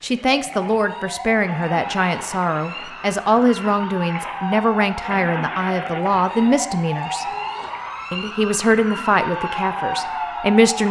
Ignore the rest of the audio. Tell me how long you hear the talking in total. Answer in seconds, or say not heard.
10 s.